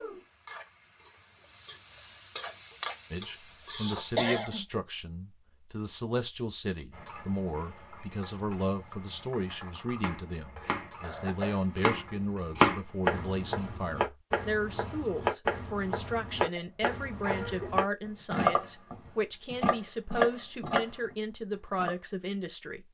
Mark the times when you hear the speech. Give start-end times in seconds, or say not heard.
3.1-22.8.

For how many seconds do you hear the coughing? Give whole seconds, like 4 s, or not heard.
2 s.